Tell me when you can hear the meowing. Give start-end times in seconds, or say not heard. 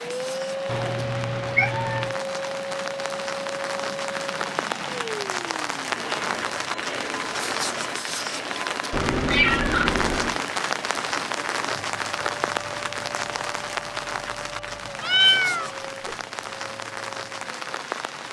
0.7-2.1, 8.9-10.4, 15.0-15.8.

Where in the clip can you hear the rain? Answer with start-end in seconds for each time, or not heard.
0.0-18.2.